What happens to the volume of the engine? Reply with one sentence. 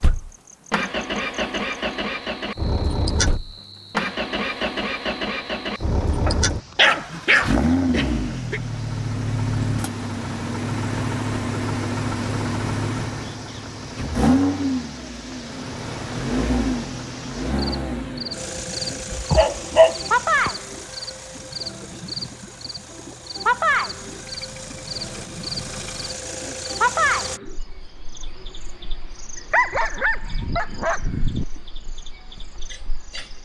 The loudness of the engine goes down.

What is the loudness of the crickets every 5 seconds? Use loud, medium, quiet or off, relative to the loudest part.
quiet, quiet, quiet, medium, loud, loud, quiet.